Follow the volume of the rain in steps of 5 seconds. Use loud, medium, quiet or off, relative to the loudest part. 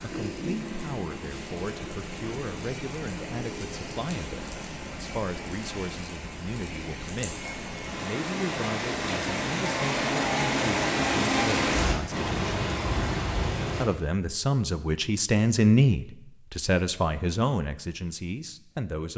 medium, medium, loud, off.